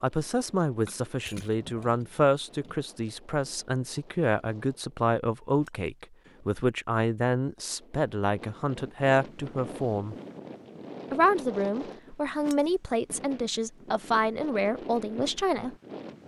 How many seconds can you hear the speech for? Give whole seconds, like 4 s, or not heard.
15 s.